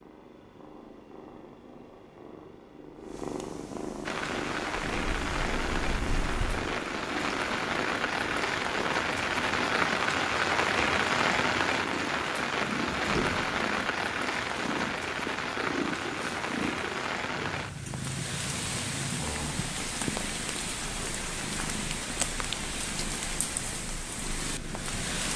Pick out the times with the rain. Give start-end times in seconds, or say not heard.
4.0-25.3.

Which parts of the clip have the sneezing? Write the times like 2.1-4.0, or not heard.
not heard.